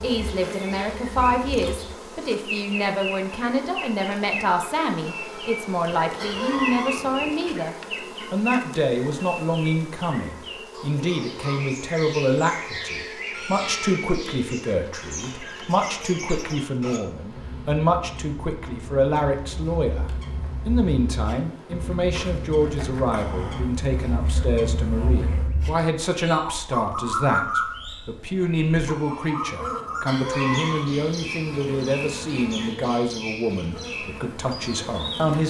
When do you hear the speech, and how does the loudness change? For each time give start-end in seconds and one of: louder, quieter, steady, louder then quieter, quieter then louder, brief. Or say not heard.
0.0-35.4 steady.